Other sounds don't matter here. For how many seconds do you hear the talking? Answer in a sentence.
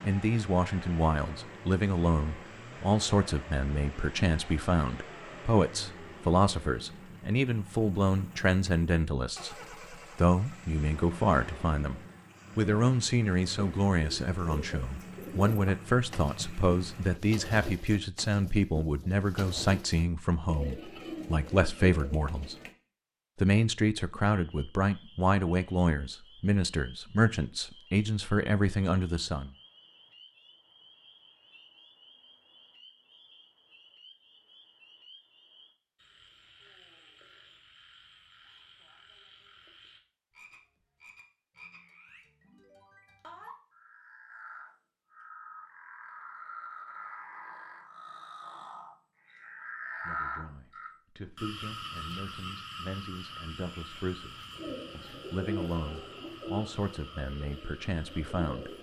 You can hear the talking for 36 seconds altogether.